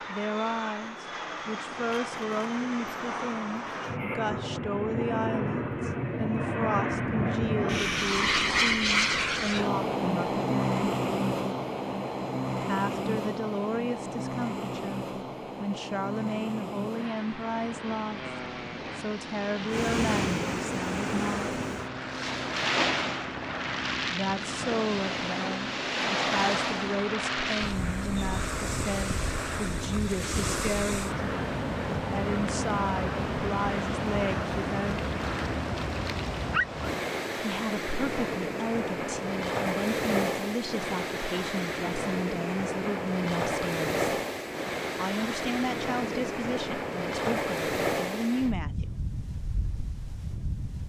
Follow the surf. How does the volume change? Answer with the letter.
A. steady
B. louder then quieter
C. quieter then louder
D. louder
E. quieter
A.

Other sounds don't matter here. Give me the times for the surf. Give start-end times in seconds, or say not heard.
19.6-50.8.